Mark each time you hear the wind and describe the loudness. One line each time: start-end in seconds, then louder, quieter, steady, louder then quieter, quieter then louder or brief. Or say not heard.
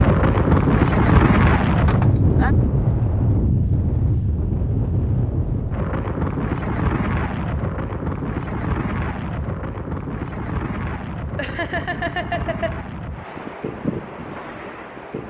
0.0-15.2 quieter.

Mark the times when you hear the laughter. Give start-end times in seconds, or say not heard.
1.9-2.5, 11.3-12.8.